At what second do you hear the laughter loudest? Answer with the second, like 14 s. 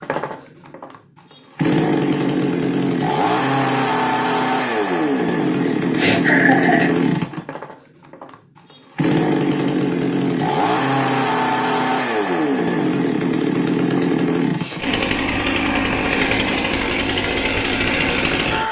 6 s.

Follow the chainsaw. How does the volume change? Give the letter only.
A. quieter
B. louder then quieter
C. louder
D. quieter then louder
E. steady
E.